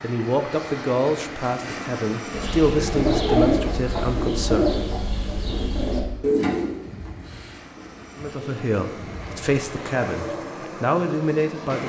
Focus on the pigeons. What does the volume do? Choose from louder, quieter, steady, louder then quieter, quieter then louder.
quieter.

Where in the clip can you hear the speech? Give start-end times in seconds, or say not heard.
0.0-4.7, 8.2-11.8.